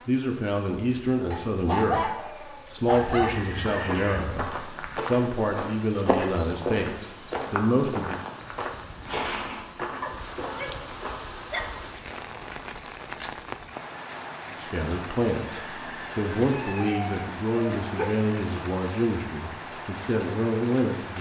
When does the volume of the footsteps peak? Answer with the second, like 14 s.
6 s.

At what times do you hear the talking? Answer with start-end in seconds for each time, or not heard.
0.1-8.2, 14.5-21.1.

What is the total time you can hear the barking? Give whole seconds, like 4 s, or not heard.
5 s.